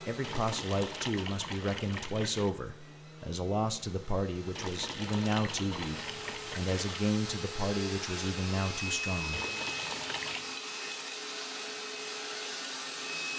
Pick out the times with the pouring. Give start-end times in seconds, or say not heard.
0.2-2.5, 4.5-7.0, 9.3-10.6.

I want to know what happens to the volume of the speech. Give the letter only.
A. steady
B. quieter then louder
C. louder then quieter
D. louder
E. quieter
A.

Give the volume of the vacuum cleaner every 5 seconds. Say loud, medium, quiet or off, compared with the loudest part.
medium, loud, loud.